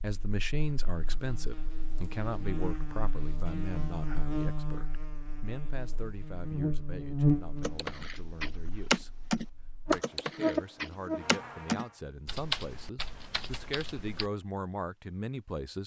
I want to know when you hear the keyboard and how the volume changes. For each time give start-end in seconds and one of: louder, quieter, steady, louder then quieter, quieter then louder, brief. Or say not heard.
7.6-14.3 quieter.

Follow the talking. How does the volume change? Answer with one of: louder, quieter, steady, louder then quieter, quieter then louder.
quieter then louder.